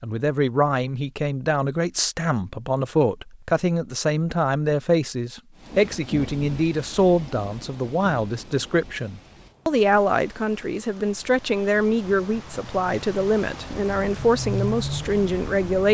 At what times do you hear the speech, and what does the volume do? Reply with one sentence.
The speech can be heard from 0.0 to 15.8 s, at a steady volume.